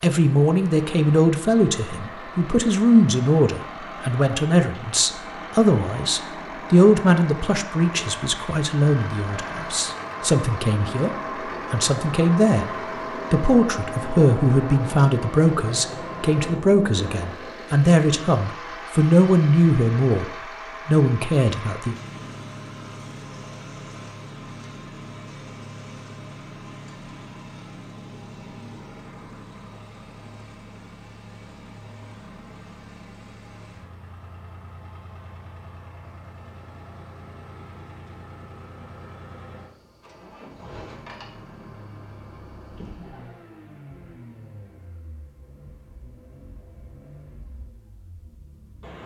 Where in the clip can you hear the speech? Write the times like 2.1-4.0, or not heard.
0.0-11.1, 11.7-12.7, 13.3-21.9.